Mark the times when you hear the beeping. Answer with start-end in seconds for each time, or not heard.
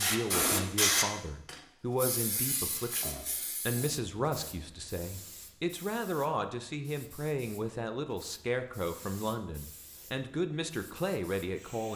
not heard.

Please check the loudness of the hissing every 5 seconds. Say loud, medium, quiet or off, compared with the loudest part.
loud, quiet, quiet.